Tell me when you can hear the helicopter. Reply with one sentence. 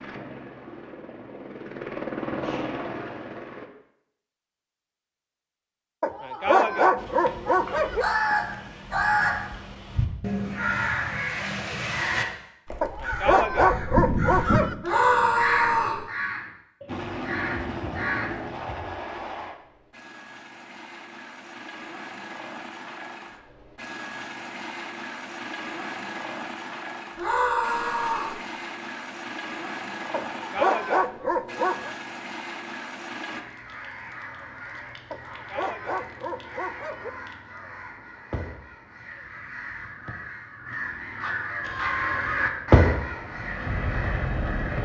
You can hear the helicopter from 0.0 to 3.7 s, from 16.9 to 33.5 s and from 41.6 to 44.8 s.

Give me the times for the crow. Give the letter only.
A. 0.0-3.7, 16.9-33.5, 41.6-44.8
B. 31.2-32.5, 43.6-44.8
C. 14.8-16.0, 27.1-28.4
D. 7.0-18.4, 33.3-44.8
D.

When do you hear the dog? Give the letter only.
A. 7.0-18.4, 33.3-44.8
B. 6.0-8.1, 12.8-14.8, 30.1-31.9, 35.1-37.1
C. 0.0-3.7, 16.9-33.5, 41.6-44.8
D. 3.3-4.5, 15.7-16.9
B.